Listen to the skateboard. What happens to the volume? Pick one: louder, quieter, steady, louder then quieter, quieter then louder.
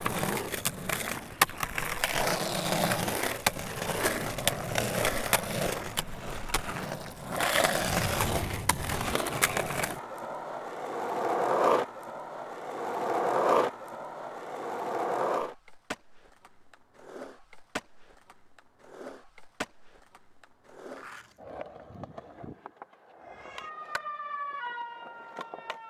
quieter.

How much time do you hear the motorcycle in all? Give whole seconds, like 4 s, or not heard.
not heard.